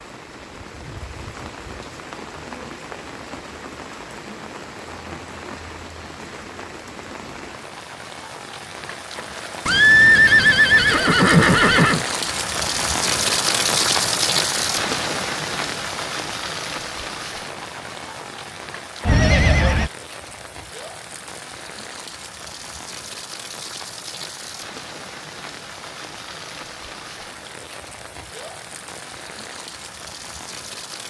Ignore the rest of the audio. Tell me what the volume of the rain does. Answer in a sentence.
The volume of the rain goes up, then down.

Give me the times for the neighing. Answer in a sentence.
You can hear the neighing from 9.7 to 12.1 s and from 19.1 to 19.9 s.